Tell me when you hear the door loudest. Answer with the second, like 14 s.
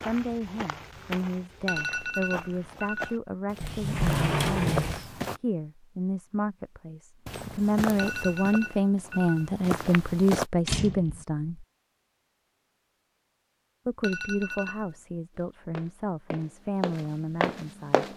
4 s.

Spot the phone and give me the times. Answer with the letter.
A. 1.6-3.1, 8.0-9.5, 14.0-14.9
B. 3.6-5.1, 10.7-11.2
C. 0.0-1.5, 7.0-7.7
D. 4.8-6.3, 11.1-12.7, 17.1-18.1
A.